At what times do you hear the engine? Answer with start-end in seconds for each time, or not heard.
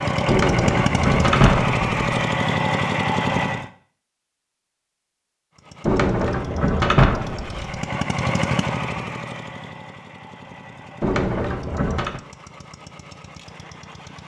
0.0-3.7, 5.5-14.2.